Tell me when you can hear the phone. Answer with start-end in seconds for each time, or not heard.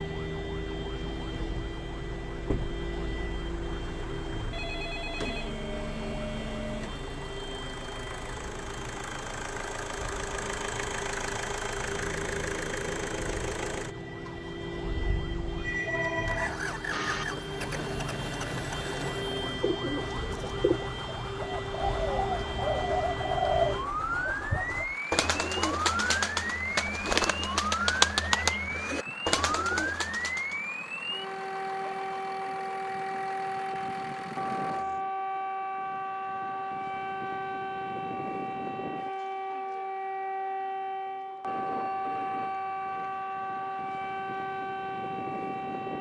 4.5-5.5, 15.4-17.2, 41.5-43.2.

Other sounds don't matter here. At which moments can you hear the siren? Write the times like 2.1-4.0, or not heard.
0.0-45.9.